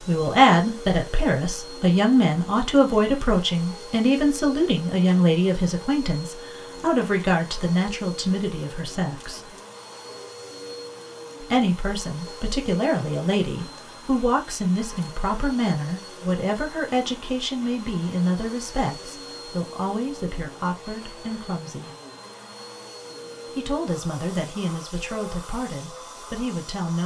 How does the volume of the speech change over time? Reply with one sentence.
The volume of the speech goes down.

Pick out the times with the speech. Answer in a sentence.
You can hear the speech from 0.1 to 9.4 s, from 11.4 to 21.9 s and from 23.6 to 27.0 s.